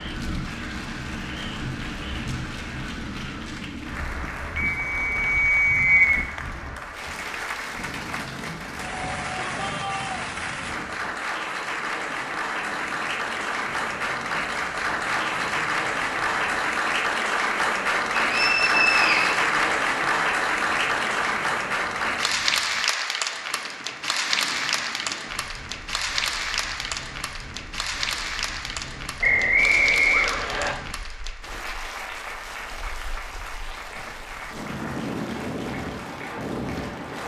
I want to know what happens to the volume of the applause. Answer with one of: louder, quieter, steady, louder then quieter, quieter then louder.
louder then quieter.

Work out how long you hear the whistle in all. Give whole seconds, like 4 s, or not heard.
4 s.